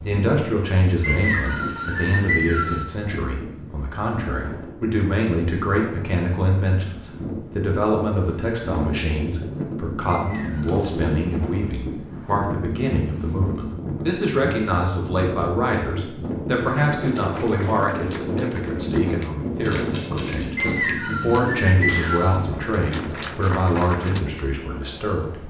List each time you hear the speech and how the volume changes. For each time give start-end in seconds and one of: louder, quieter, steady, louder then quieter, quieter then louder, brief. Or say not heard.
0.1-25.4 steady.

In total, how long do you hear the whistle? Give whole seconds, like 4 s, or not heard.
4 s.